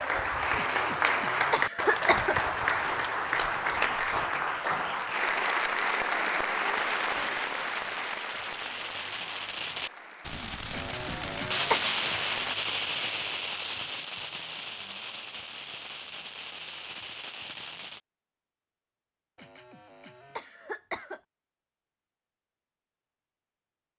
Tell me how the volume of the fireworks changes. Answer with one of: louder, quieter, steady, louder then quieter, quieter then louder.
louder then quieter.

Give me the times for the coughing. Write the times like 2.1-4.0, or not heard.
0.6-2.4, 10.7-11.9, 19.4-21.2.